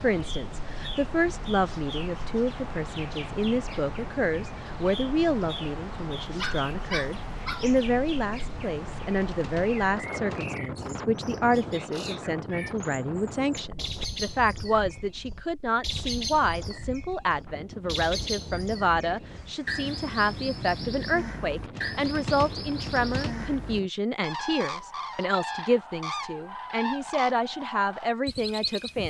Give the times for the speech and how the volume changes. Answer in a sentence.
The speech can be heard from 0.0 to 29.0 s, at a steady volume.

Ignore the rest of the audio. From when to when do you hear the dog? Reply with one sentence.
You can hear the dog from 6.2 to 7.8 s.